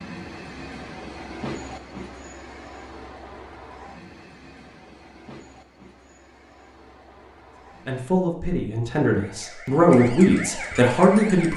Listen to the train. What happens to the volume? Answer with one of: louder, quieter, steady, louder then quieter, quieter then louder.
quieter.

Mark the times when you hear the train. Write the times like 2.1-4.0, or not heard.
0.0-8.1.